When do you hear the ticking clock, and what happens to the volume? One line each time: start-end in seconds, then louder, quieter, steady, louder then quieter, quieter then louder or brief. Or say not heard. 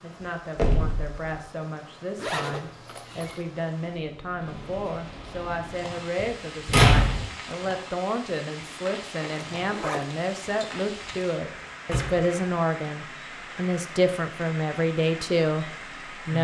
not heard.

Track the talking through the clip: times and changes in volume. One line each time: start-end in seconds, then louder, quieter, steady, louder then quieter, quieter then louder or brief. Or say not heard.
0.0-16.3 louder.